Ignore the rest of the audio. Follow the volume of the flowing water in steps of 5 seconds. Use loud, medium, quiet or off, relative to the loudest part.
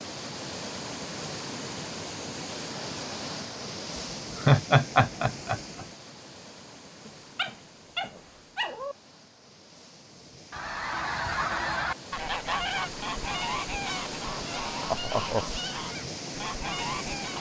loud, medium, loud, loud.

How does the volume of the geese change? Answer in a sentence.
The volume of the geese goes down.